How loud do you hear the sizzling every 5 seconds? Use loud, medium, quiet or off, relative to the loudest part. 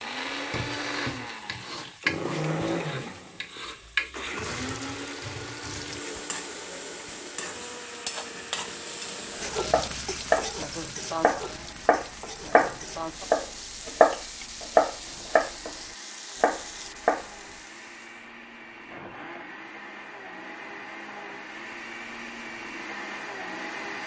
loud, loud, loud, medium, off.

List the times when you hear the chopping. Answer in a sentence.
The chopping can be heard from 9.6 to 17.2 s.